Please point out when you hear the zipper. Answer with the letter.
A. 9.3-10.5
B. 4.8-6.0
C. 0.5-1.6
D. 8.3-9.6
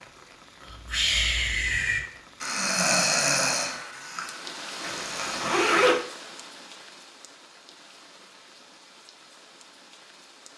B.